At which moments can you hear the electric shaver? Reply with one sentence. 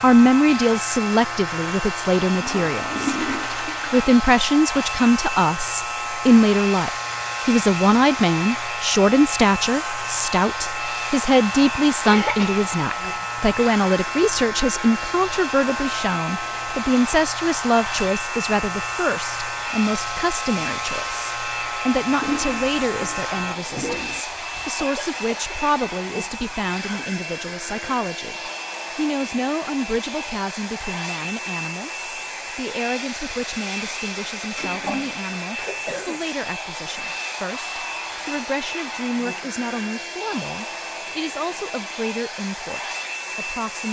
You can hear the electric shaver from 0.0 to 23.6 s.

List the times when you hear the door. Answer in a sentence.
The door can't be heard in this clip.